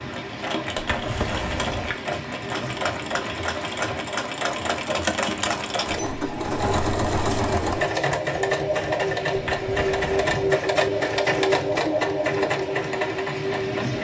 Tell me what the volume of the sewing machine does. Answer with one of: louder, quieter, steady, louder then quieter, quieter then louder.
louder.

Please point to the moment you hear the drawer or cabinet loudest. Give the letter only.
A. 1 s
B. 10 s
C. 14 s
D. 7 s
A.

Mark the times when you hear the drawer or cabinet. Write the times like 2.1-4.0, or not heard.
0.8-1.9, 9.3-10.3.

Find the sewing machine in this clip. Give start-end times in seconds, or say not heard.
0.0-13.9.